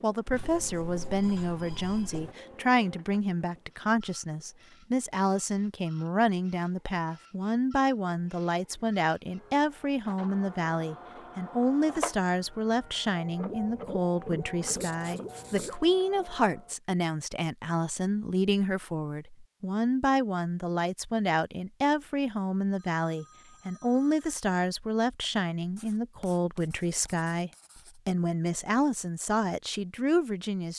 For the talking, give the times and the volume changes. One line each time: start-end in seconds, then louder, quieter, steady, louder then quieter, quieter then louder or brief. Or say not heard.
0.0-30.7 steady.